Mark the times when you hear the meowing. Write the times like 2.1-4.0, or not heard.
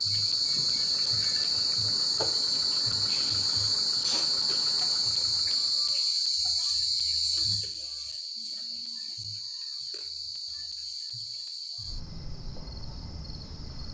not heard.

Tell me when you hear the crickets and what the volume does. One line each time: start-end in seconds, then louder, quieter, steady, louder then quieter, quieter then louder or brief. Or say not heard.
0.0-13.8 quieter.